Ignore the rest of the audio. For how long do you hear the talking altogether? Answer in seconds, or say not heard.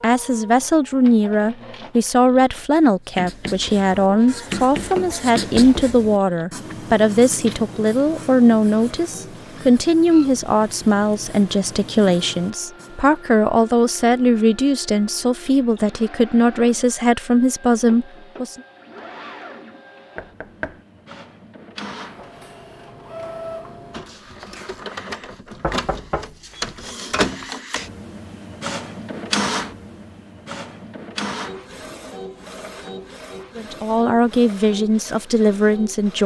21 s.